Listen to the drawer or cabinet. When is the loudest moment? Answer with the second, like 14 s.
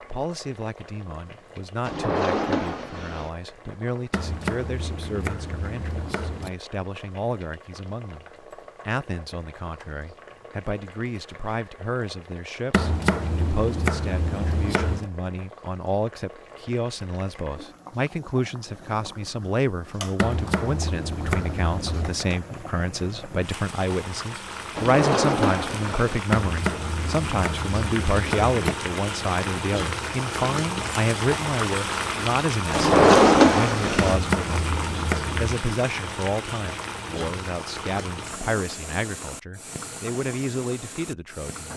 33 s.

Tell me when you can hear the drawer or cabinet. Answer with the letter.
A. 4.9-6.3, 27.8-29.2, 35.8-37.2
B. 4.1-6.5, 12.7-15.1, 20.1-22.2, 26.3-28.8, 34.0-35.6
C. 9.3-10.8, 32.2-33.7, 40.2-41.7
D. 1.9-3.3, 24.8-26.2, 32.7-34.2
D.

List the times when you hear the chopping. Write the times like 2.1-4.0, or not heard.
4.1-6.5, 12.7-15.1, 20.1-22.2, 26.3-28.8, 34.0-35.6.